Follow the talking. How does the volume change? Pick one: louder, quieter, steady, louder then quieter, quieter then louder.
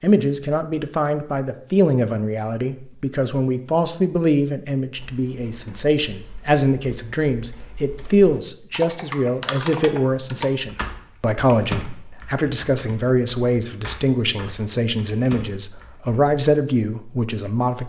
steady.